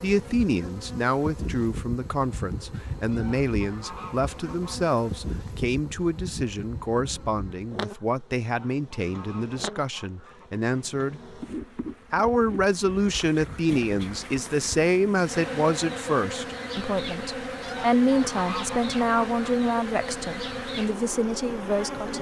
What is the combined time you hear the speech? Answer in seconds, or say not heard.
21 s.